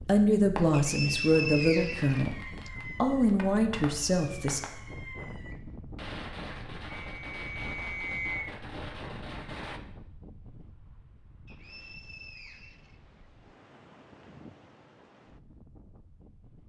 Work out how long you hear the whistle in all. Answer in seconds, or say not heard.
5 s.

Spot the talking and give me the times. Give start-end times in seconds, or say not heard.
0.0-4.6.